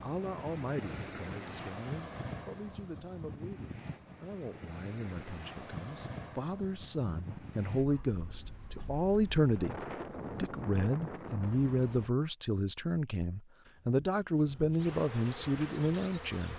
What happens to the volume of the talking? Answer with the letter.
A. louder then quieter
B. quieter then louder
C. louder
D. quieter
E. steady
C.